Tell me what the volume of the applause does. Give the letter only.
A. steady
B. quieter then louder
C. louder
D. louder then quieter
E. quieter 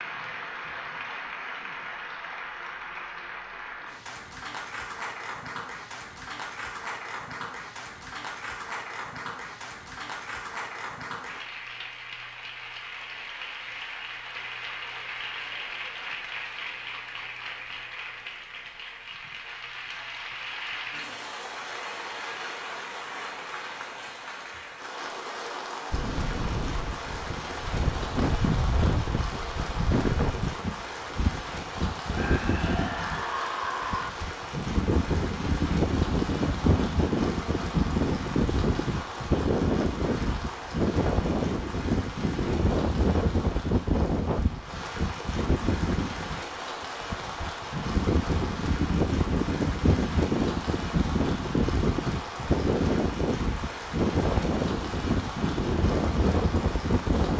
A.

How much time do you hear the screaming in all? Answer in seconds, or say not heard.
2 s.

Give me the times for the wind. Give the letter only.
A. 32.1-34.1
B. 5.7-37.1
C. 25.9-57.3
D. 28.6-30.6
C.